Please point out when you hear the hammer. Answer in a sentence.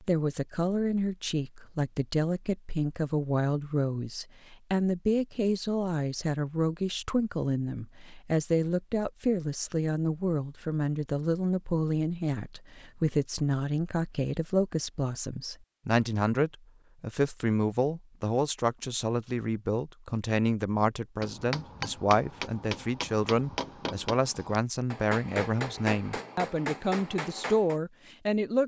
You can hear the hammer from 21.2 to 27.8 s.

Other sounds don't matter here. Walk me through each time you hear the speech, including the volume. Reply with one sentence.
You can hear the speech from 0.0 to 28.6 s, at a steady volume.